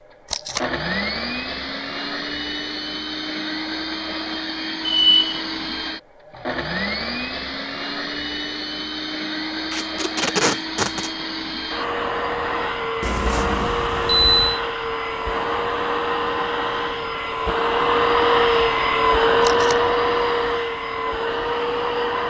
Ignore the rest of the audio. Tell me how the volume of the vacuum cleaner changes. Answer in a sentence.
The loudness of the vacuum cleaner goes up.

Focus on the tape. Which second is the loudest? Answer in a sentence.
The volume of the tape peaks at 10 seconds.